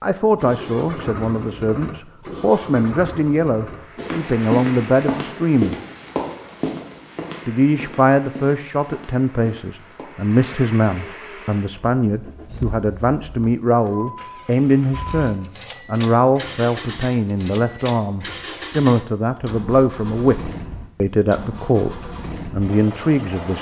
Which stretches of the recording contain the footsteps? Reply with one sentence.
You can hear the footsteps from 4.0 to 10.1 s.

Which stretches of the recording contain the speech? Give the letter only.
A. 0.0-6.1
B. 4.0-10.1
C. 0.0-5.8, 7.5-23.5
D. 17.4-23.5
C.